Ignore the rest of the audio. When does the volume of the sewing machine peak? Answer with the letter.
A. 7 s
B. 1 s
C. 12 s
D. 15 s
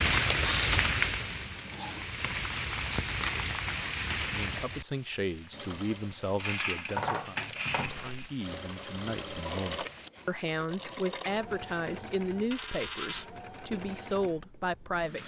A.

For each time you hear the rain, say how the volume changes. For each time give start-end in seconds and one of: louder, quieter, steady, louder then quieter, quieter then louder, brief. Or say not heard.
0.0-10.1 quieter.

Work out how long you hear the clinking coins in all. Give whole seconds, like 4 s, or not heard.
3 s.